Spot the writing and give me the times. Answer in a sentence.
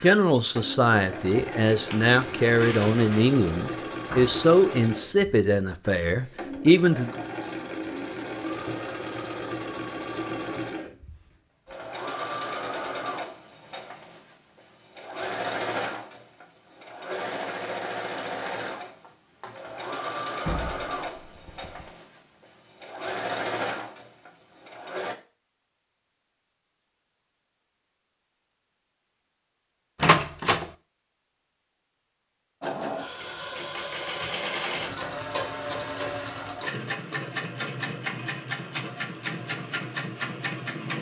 You can't hear the writing here.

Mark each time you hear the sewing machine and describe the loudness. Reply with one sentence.
You can hear the sewing machine from 0.0 to 25.1 s, at a steady volume; and from 32.6 to 40.9 s, at a steady volume.